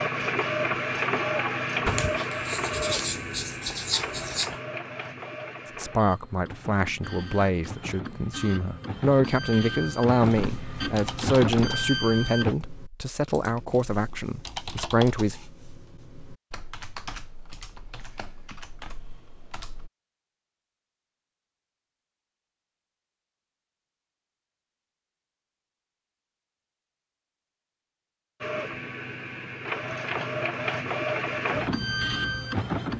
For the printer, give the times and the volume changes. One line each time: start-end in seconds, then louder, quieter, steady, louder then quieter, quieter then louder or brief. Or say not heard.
0.0-12.6 quieter then louder
28.4-32.9 louder.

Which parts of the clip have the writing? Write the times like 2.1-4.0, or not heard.
1.9-4.5.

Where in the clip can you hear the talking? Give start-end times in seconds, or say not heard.
5.8-15.3.